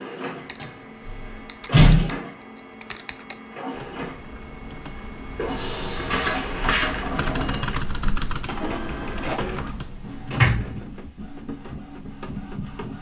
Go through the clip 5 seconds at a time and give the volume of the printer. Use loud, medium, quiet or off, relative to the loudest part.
medium, loud, medium.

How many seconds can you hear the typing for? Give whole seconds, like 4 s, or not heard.
10 s.